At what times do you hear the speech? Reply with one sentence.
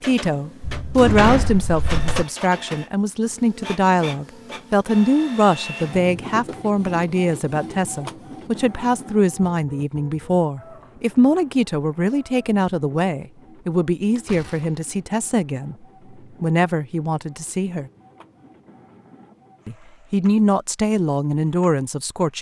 The speech can be heard from 0.0 to 15.8 s, from 16.4 to 17.9 s and from 19.6 to 22.3 s.